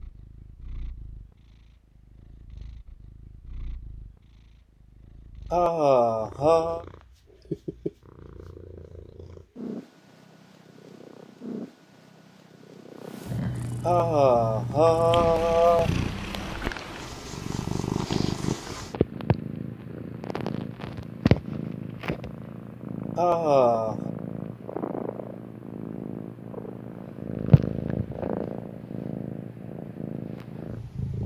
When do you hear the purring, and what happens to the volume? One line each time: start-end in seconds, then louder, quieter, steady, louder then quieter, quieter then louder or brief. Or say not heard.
0.0-31.2 louder.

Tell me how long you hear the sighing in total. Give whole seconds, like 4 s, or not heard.
4 s.